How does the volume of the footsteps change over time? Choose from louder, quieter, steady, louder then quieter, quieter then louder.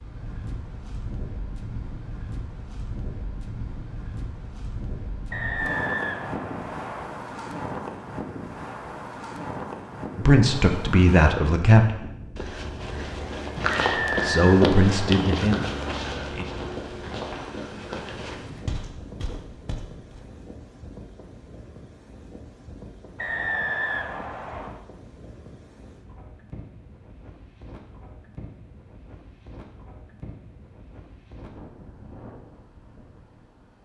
quieter.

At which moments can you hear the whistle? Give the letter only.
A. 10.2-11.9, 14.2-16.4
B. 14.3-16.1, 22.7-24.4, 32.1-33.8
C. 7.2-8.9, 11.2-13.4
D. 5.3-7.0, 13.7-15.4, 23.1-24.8
D.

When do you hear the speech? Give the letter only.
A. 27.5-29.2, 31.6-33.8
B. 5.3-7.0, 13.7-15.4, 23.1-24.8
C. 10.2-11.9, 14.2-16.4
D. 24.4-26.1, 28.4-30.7
C.